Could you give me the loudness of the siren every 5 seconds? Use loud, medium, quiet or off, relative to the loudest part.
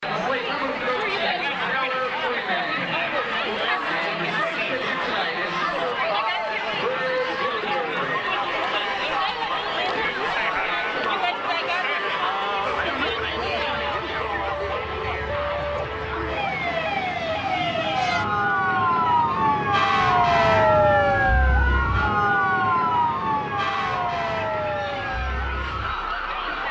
off, off, quiet, loud, loud, medium.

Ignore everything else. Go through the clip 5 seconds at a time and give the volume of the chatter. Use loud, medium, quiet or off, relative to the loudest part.
loud, loud, loud, medium, quiet, medium.